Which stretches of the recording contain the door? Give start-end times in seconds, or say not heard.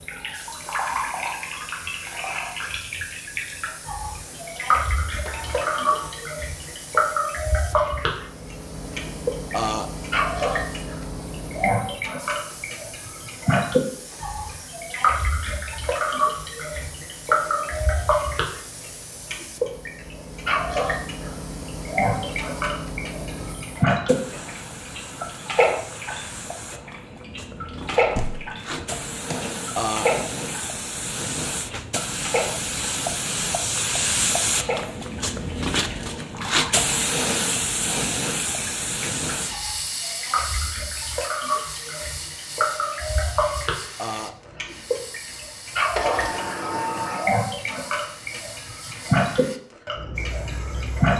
5.2-6.2, 28.1-29.4, 46.0-47.3.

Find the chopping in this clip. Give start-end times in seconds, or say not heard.
not heard.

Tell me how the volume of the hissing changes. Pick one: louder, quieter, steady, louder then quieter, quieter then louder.
louder then quieter.